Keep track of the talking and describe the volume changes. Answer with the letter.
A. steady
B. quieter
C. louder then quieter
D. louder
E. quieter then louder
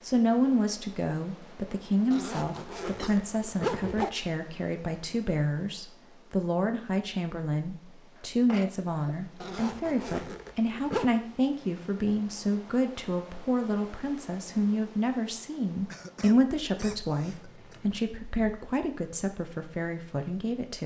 A.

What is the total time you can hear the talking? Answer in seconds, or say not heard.
21 s.